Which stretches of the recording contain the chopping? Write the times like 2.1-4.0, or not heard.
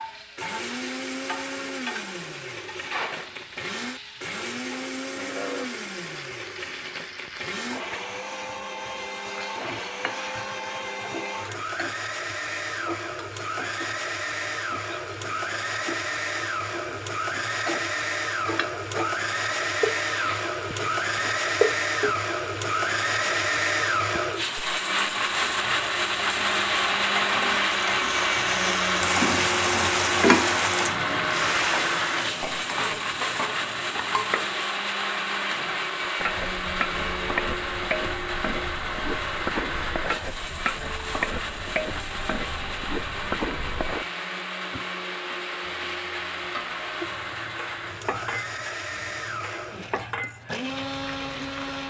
not heard.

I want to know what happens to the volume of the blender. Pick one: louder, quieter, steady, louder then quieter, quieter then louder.
louder then quieter.